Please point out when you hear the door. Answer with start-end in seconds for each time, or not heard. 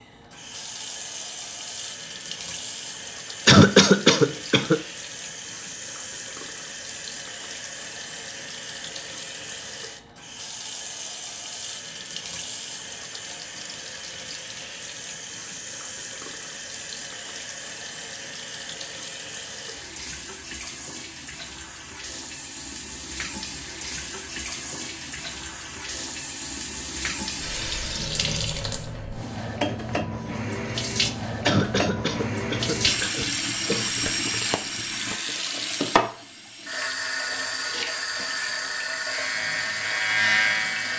not heard.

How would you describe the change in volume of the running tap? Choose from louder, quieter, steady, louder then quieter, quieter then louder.
louder.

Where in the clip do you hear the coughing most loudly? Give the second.
4 s.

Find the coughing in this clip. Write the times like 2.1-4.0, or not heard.
3.5-4.8, 31.4-34.0.